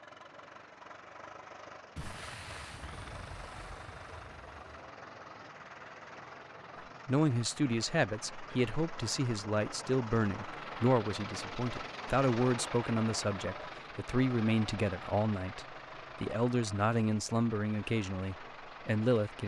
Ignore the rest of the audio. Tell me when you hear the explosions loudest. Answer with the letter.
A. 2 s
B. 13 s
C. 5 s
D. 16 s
A.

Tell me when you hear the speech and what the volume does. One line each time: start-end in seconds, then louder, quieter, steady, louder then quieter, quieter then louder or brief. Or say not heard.
7.0-19.4 steady.